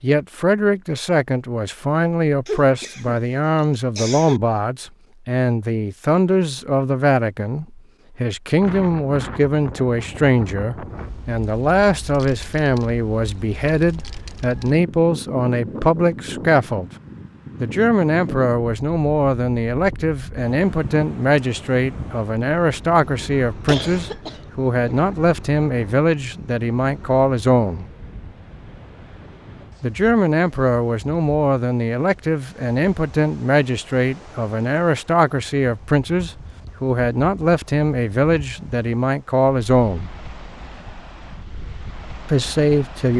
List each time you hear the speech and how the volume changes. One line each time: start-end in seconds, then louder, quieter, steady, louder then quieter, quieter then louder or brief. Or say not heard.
0.0-16.9 steady
17.6-27.9 steady
29.8-40.1 steady
42.2-43.1 brief.